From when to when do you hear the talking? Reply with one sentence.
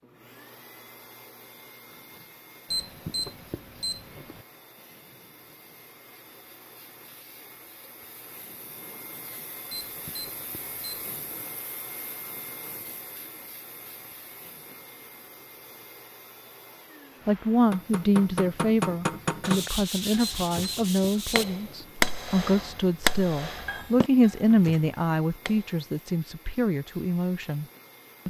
The talking can be heard from 17.2 to 27.6 s.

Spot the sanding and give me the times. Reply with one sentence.
The sanding can be heard from 19.4 to 21.4 s.